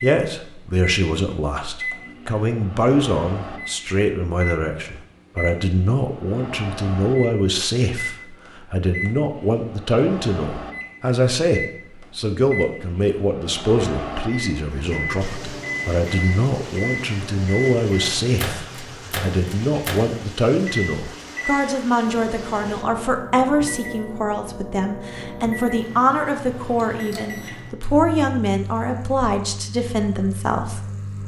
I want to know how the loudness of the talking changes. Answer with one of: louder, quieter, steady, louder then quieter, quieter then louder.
steady.